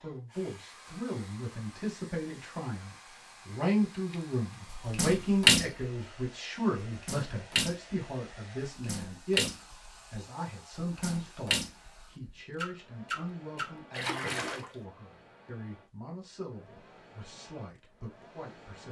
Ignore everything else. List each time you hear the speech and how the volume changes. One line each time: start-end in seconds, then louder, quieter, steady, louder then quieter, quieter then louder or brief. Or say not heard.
0.0-18.8 quieter.